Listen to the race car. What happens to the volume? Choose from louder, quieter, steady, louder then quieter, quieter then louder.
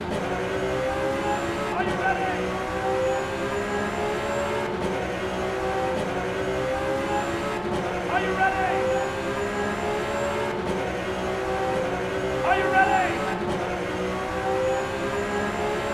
steady.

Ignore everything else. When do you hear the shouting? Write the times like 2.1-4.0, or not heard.
1.7-2.5, 8.1-9.1, 12.4-13.4.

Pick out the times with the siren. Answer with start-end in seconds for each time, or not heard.
not heard.